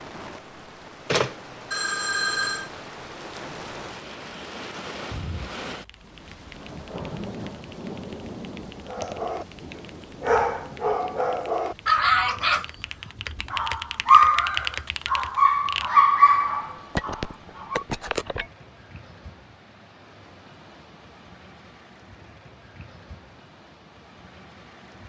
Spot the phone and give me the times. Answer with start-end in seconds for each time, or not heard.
1.1-2.7, 16.9-18.4.